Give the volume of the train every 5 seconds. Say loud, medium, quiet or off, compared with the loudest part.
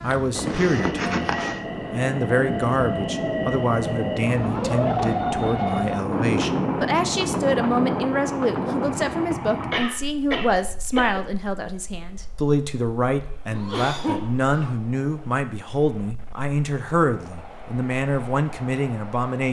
loud, loud, quiet, quiet.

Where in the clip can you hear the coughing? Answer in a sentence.
You can hear the coughing from 0.1 to 1.6 s, from 9.7 to 11.2 s and from 13.5 to 14.7 s.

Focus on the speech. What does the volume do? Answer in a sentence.
The loudness of the speech stays about the same.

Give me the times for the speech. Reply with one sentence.
You can hear the speech from 0.0 to 19.4 s.